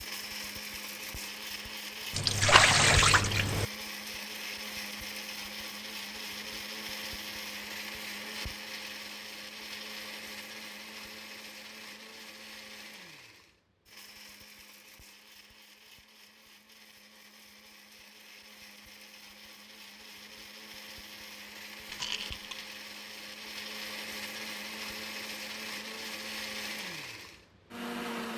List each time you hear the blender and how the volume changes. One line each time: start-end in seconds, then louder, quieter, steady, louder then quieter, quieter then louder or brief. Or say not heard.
0.0-28.3 quieter then louder.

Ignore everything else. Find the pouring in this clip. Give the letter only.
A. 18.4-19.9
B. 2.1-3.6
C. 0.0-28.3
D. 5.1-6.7
B.